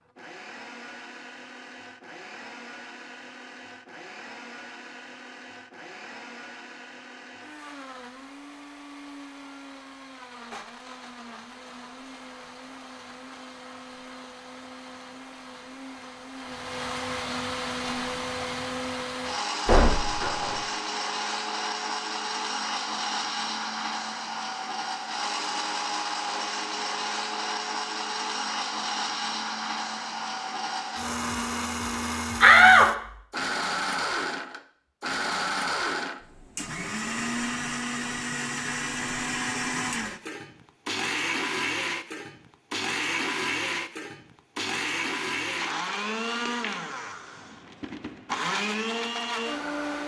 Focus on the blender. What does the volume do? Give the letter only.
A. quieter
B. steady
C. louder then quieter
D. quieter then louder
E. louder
E.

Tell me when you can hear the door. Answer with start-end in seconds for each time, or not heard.
19.6-20.6, 32.4-32.9.